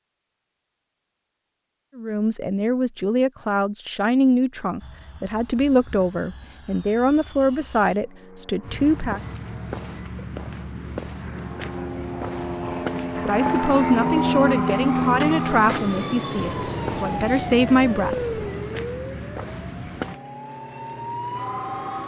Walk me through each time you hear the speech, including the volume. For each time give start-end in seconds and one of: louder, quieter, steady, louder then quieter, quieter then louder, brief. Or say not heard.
1.9-9.2 steady
13.2-18.2 quieter then louder.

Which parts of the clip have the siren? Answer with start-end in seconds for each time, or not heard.
13.6-22.0.